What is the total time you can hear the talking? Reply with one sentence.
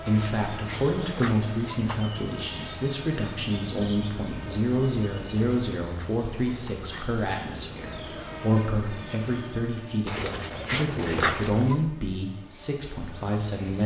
The talking can be heard for 14 seconds in total.